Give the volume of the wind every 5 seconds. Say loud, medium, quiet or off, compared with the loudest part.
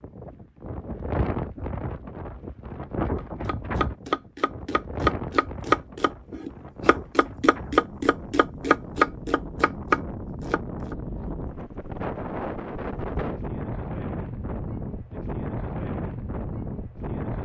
loud, medium, loud, loud.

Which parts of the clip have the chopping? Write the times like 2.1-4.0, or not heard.
3.1-10.9.